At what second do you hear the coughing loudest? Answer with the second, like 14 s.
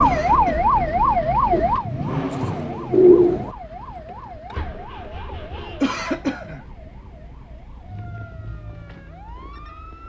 6 s.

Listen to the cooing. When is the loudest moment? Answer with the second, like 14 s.
3 s.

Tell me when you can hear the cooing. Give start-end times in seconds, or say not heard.
1.5-3.5.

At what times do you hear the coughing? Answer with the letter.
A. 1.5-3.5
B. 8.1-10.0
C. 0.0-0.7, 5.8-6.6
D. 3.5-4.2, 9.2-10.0
C.